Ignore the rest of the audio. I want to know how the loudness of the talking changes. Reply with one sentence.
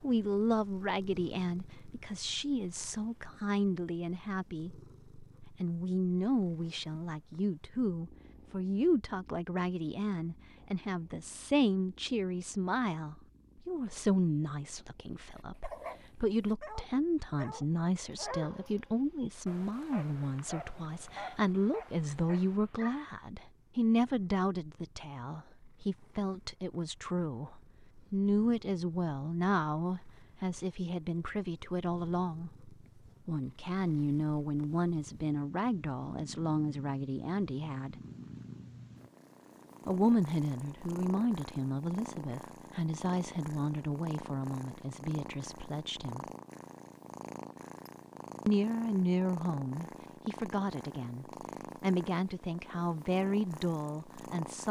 The volume of the talking stays about the same.